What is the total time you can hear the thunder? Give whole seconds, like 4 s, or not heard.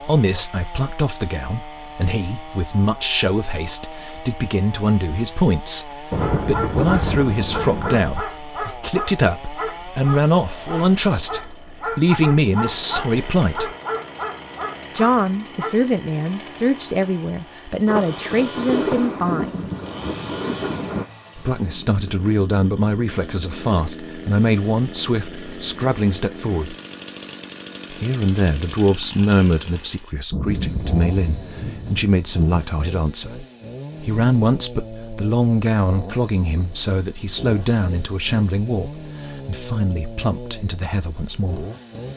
7 s.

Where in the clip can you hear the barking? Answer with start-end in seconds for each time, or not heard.
6.2-15.7.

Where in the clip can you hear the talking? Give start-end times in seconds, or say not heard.
0.0-13.7, 14.9-19.6, 21.4-26.8, 27.9-41.6.